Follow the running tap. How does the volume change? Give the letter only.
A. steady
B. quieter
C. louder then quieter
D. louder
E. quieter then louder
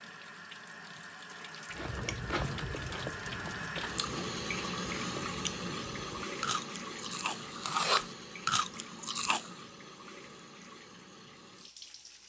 C.